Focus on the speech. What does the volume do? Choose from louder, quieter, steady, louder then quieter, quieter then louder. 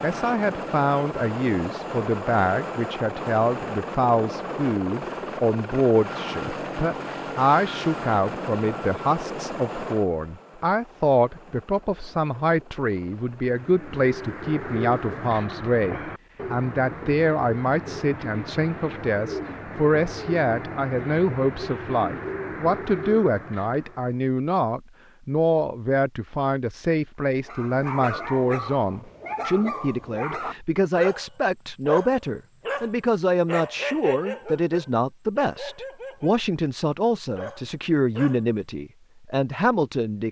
steady.